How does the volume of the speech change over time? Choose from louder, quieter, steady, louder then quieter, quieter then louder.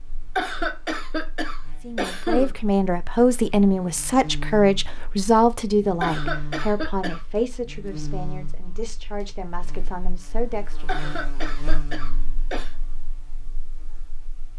quieter.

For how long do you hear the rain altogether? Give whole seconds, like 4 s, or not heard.
not heard.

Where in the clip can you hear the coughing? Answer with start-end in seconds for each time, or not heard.
0.3-2.5, 6.0-7.2, 10.8-12.8.